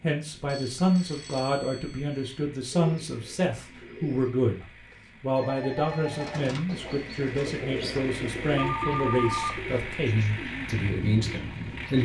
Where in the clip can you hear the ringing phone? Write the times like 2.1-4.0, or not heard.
0.5-2.2, 4.9-6.4, 8.6-9.8.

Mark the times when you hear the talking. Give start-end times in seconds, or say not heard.
0.0-12.0.